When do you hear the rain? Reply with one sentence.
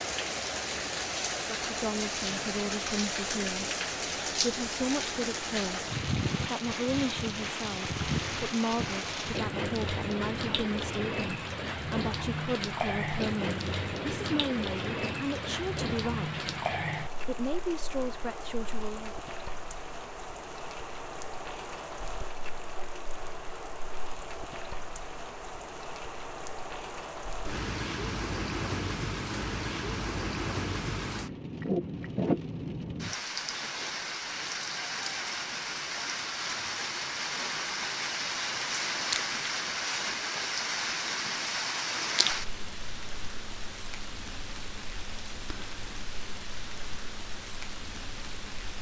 The rain can be heard from 0.0 to 48.7 s.